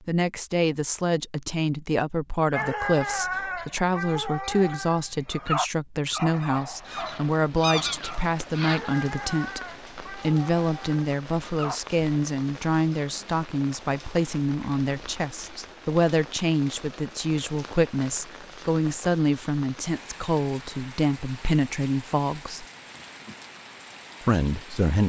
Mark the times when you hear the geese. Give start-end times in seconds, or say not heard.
6.4-8.9.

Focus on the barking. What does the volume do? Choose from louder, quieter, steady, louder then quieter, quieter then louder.
quieter.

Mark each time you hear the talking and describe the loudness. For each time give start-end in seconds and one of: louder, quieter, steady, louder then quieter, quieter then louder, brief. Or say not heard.
0.1-22.6 steady
24.2-25.0 brief.